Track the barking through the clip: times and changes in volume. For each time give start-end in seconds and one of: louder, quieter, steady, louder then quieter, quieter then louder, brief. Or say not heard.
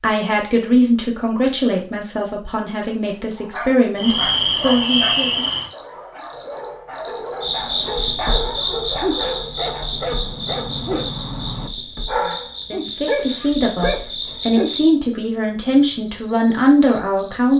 3.0-14.7 louder.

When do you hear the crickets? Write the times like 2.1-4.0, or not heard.
4.0-17.5.